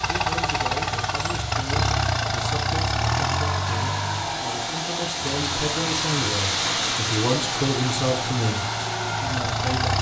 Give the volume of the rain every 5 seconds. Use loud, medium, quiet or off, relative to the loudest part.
medium, loud.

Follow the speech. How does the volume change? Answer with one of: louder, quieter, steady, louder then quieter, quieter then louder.
louder.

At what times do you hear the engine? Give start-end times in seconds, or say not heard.
0.0-9.9.